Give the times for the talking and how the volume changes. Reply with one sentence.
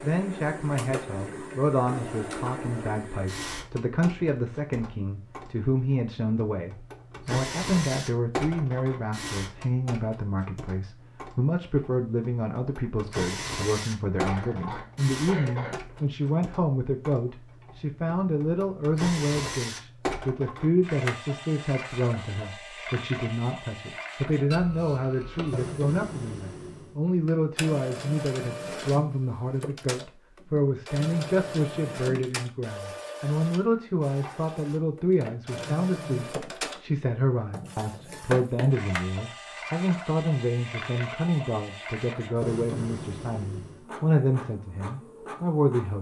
You can hear the talking from 0.0 to 45.9 s, at a steady volume.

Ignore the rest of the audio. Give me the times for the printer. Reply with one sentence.
The printer can be heard from 0.0 to 45.9 s.